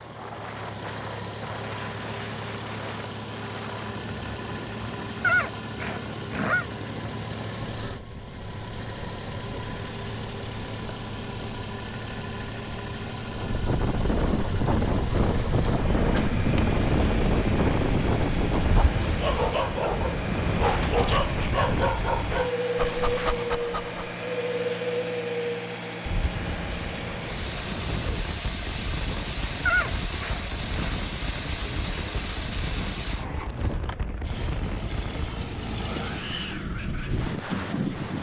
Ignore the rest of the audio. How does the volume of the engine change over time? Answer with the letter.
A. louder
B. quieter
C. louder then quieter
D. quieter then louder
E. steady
E.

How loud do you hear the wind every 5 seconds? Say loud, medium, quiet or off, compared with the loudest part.
quiet, quiet, loud, loud, loud, medium, medium, medium.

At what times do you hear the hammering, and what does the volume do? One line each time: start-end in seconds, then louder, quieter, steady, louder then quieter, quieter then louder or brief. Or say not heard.
not heard.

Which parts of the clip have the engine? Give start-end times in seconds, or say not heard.
0.0-38.1.